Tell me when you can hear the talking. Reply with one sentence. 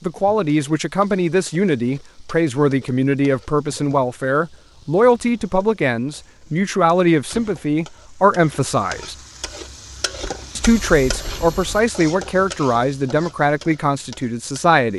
You can hear the talking from 0.0 to 9.2 s and from 10.6 to 14.9 s.